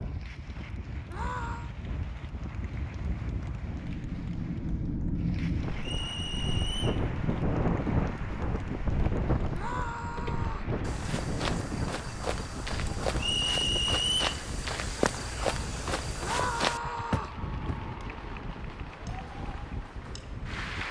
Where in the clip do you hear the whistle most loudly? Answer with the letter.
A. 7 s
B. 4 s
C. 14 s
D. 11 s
C.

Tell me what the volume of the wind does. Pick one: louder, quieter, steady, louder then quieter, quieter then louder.
louder then quieter.